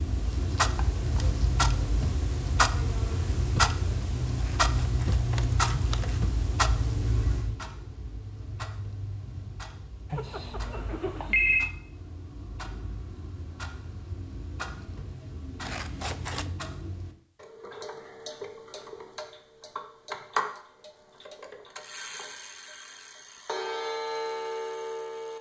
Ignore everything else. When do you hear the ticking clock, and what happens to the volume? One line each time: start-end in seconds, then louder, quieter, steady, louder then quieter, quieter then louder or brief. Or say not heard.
0.0-25.3 quieter then louder.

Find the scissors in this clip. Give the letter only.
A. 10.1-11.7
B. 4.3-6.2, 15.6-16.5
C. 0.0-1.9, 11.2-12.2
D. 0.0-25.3
B.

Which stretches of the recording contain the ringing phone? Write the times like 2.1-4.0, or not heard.
10.1-11.7.